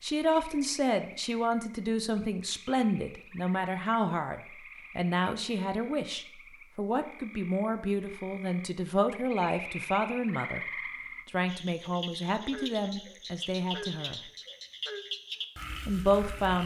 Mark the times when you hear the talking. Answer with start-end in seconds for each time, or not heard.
0.0-10.6, 11.2-14.2, 15.8-16.6.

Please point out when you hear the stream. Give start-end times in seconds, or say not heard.
not heard.